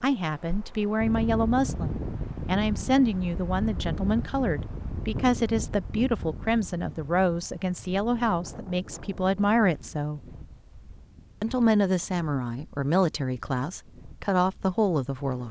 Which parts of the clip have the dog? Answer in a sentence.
You can't hear the dog here.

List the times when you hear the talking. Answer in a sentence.
The talking can be heard from 0.0 to 10.3 s and from 11.4 to 15.4 s.